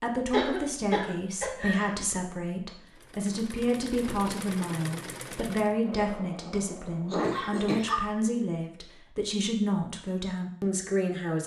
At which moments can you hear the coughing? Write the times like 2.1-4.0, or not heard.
0.3-1.9, 7.1-8.0.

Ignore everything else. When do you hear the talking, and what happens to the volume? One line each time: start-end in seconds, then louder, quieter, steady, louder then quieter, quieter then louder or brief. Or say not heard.
0.0-11.4 steady.